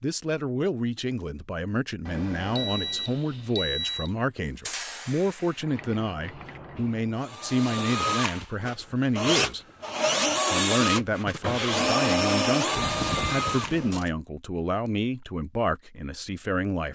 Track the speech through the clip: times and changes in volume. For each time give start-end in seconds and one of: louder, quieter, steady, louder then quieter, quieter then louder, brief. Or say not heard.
0.0-9.6 steady
10.5-16.8 steady.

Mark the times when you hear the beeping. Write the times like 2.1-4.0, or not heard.
2.0-4.1, 12.8-14.1.